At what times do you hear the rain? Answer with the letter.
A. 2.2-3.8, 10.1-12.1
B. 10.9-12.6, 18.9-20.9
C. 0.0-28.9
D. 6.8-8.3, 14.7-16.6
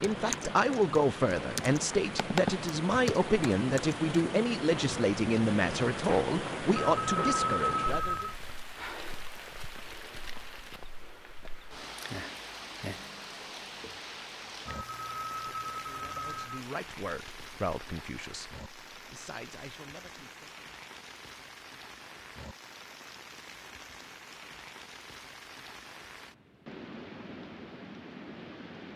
C.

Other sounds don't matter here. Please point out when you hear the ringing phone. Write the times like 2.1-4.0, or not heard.
6.8-8.3, 14.7-16.6.